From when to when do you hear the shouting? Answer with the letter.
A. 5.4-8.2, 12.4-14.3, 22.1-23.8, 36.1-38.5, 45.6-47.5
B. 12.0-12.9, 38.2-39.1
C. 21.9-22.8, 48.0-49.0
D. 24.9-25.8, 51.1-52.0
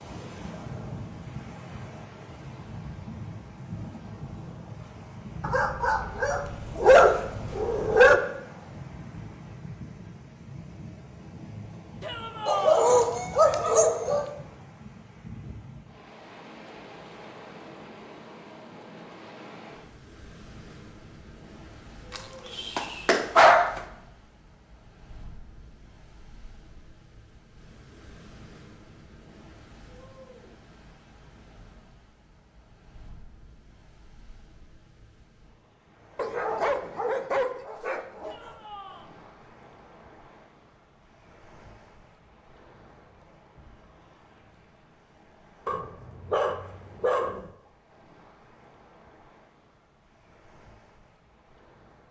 B.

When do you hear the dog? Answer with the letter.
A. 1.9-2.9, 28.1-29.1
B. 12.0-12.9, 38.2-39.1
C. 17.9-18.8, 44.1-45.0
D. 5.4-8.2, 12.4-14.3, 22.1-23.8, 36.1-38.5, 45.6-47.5
D.